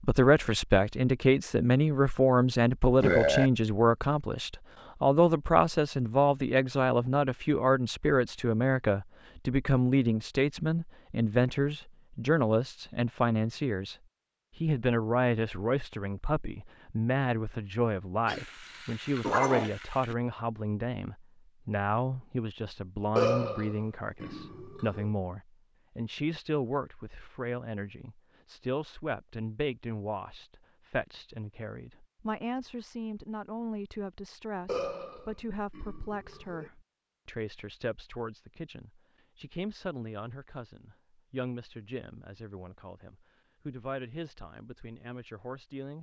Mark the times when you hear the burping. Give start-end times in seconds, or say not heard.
3.0-3.5, 23.1-25.1, 34.6-36.7.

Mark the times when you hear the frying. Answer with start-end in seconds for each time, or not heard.
18.2-20.1.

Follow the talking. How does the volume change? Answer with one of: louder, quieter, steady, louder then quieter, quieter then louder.
quieter.